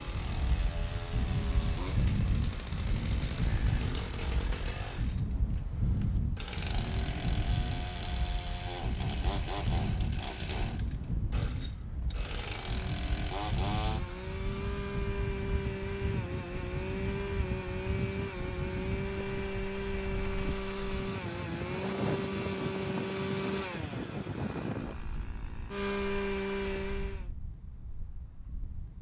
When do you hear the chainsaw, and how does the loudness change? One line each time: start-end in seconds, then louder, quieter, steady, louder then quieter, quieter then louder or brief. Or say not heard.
0.0-27.2 louder.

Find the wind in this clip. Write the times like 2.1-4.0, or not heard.
0.0-28.9.